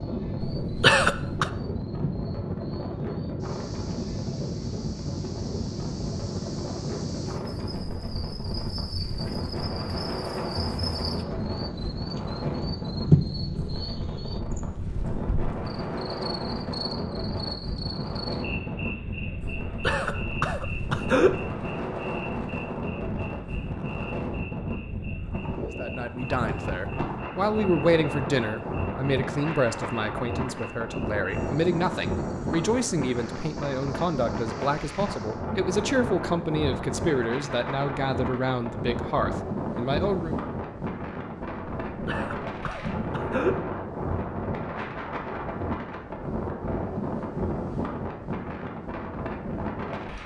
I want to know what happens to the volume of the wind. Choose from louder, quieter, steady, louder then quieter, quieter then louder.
steady.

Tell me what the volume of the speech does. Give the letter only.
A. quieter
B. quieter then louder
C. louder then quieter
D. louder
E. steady
E.